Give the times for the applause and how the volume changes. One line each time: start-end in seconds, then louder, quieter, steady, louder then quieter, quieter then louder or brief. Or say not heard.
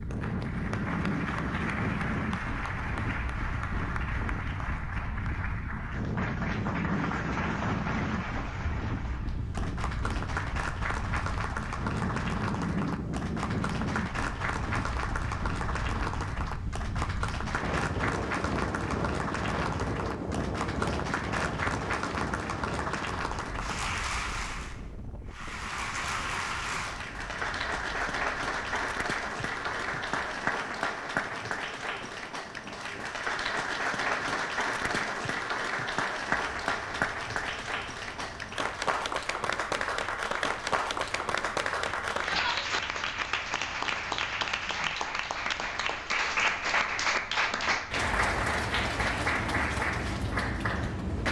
0.0-51.2 louder.